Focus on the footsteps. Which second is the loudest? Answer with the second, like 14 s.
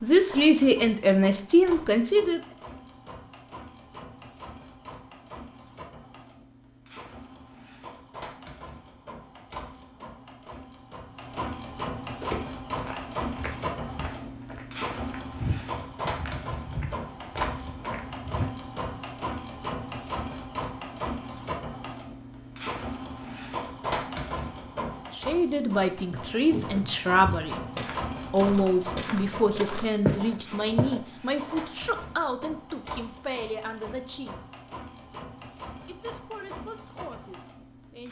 30 s.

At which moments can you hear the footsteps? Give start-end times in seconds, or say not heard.
12.2-18.4, 26.1-31.0.